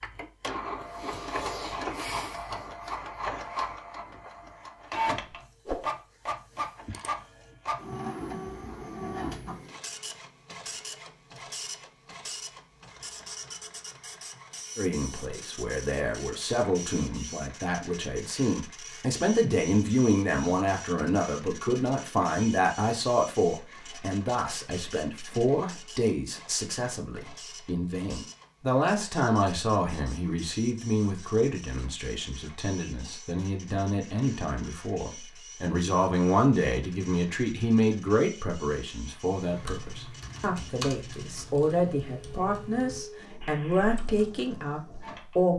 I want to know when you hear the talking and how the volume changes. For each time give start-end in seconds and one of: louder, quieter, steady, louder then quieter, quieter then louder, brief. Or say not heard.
14.8-45.5 steady.